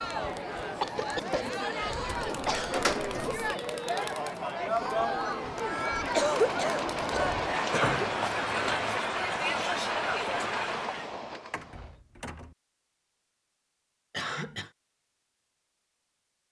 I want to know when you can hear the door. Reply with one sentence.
You can hear the door from 2.2 to 3.5 s, from 7.7 to 8.9 s and from 11.5 to 12.5 s.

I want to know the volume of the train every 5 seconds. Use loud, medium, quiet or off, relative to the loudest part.
off, loud, loud, off.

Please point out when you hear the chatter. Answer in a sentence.
The chatter can be heard from 0.0 to 11.2 s.